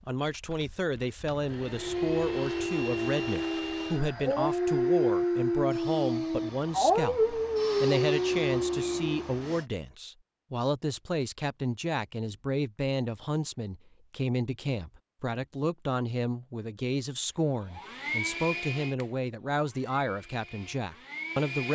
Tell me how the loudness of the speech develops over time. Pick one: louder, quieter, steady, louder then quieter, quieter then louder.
steady.